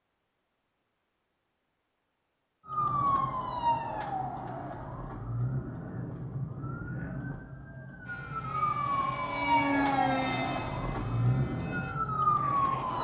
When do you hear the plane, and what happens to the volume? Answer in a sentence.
The plane can be heard from 8.1 to 12.9 s, getting louder then quieter.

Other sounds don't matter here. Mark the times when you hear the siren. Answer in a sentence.
The siren can be heard from 2.6 to 12.9 s.